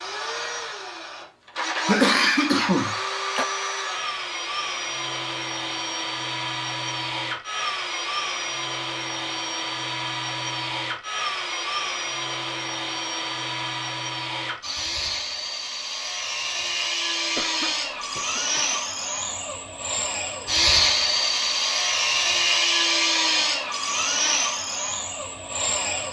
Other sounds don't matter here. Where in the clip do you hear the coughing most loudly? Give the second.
2 s.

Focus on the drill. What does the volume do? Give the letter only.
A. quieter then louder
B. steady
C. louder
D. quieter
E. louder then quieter
C.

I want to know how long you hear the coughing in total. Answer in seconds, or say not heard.
3 s.